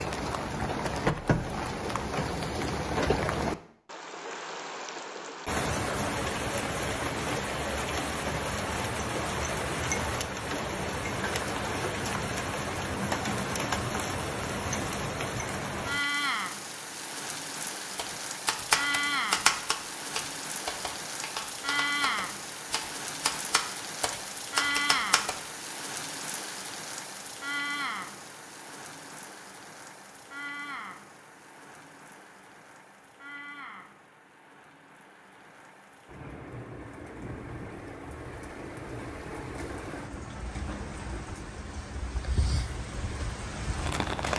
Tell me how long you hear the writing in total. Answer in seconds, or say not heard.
not heard.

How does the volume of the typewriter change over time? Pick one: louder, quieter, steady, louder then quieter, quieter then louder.
quieter then louder.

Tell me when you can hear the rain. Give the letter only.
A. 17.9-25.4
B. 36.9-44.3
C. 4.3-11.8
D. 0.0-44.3
D.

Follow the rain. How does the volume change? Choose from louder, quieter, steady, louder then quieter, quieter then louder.
quieter.